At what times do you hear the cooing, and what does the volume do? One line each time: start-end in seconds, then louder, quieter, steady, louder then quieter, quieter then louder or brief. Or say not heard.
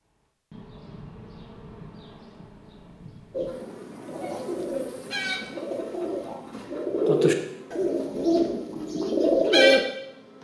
3.3-9.8 louder.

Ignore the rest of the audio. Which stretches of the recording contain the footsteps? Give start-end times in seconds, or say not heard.
not heard.